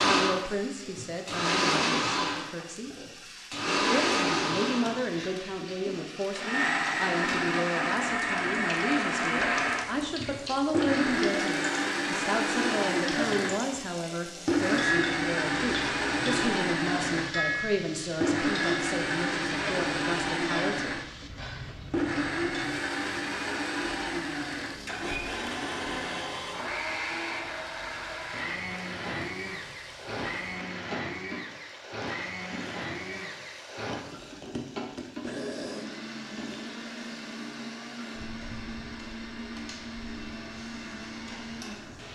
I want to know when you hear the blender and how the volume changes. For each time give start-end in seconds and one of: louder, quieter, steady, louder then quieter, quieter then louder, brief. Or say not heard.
0.0-42.1 quieter.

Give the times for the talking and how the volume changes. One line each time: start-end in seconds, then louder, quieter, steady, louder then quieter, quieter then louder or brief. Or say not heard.
0.0-2.9 brief
3.9-21.0 steady.